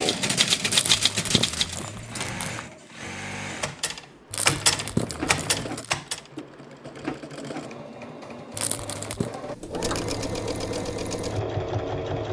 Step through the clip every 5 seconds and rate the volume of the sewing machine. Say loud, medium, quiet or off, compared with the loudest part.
medium, medium, loud.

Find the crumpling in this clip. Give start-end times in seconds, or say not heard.
0.7-2.6, 4.3-6.0, 8.5-9.3.